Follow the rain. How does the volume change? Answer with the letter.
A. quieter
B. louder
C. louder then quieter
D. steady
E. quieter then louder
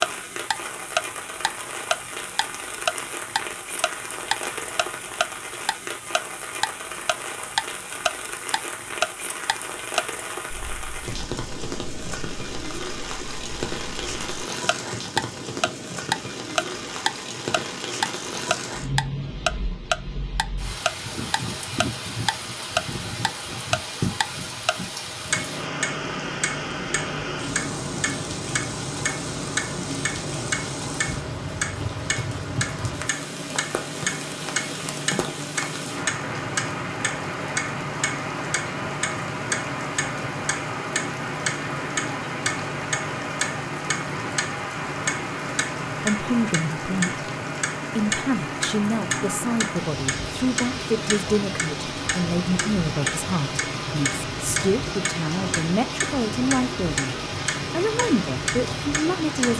D.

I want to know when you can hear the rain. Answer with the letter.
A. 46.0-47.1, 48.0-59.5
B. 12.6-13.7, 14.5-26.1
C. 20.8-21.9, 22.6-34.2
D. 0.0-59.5
D.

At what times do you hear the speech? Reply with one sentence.
You can hear the speech from 46.0 to 47.1 s and from 48.0 to 59.5 s.